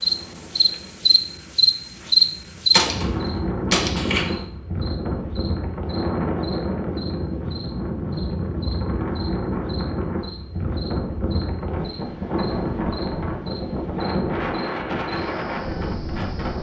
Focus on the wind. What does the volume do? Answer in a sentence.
The volume of the wind goes up.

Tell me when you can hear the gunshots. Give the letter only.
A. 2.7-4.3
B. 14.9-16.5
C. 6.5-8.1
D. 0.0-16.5
A.